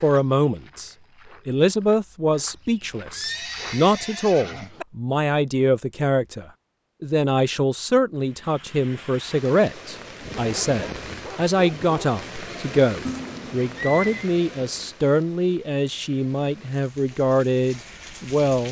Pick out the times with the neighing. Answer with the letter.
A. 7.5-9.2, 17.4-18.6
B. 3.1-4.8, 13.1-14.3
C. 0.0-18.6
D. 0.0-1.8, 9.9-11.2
B.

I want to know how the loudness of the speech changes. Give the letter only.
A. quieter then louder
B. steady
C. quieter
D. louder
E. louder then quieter
B.